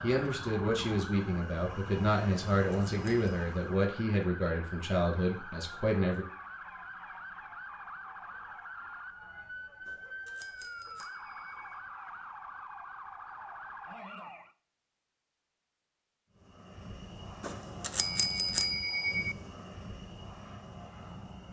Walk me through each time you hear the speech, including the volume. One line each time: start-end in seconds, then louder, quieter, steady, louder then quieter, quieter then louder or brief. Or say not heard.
0.0-6.2 steady.